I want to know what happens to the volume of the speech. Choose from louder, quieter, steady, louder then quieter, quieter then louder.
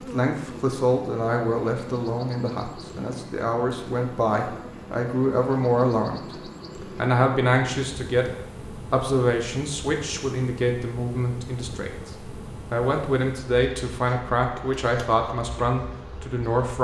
steady.